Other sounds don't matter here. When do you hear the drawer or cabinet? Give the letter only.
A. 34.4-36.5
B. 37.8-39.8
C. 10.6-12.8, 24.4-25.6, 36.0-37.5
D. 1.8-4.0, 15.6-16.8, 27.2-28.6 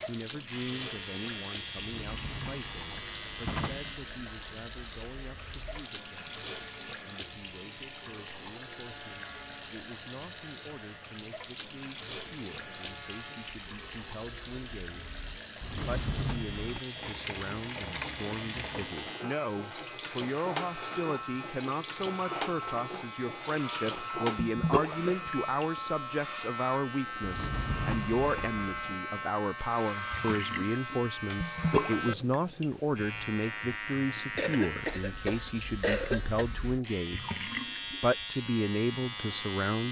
D.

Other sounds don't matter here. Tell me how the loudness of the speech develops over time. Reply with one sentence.
The volume of the speech goes up.